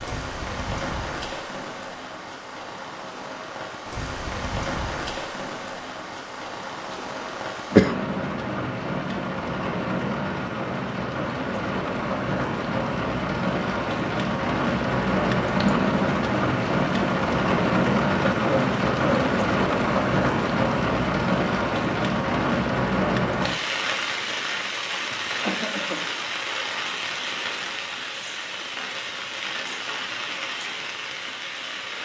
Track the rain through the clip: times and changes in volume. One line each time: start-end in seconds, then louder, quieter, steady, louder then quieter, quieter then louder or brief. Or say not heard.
0.0-31.9 louder then quieter.